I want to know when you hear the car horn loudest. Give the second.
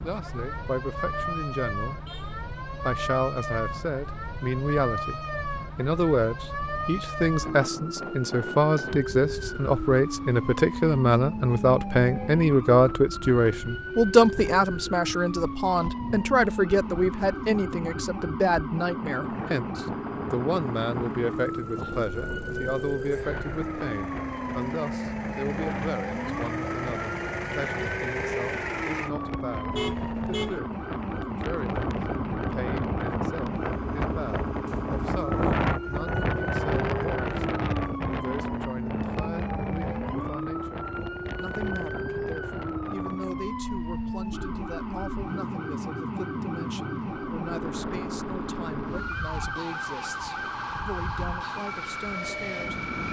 30 s.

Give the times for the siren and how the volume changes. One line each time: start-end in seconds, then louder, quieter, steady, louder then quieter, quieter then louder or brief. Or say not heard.
0.0-53.0 steady.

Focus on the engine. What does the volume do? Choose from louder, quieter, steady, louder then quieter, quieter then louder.
louder.